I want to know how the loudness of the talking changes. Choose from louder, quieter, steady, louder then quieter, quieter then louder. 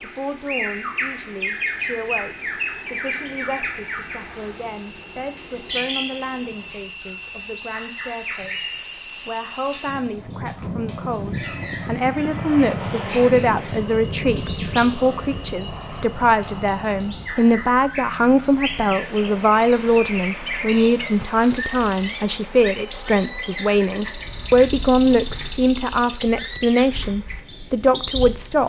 louder.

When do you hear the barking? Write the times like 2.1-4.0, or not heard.
not heard.